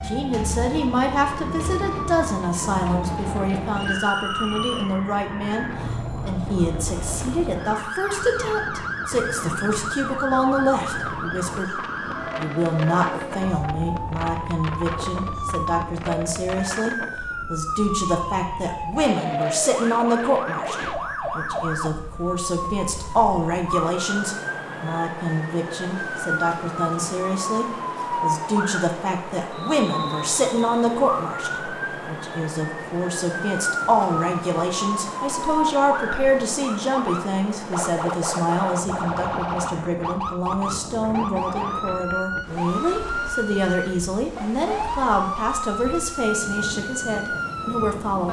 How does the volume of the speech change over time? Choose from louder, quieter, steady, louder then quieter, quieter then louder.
steady.